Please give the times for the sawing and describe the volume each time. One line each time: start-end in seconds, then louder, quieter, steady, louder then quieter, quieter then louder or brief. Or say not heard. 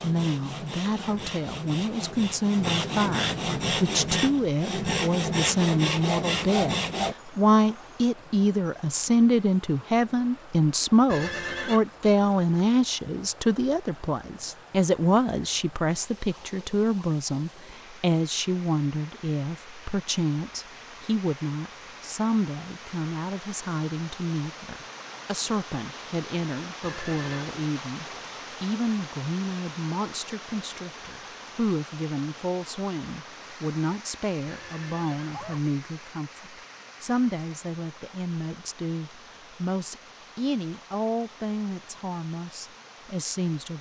0.0-7.2 louder.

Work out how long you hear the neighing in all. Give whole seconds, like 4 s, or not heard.
3 s.